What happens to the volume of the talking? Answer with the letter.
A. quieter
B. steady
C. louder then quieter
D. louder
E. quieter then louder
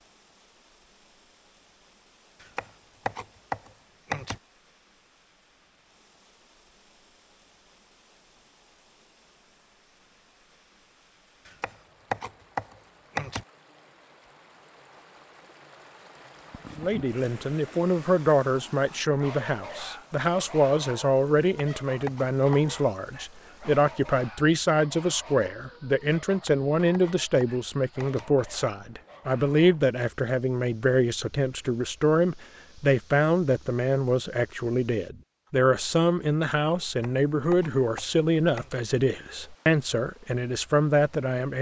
B.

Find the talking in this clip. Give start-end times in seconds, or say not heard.
16.8-41.5.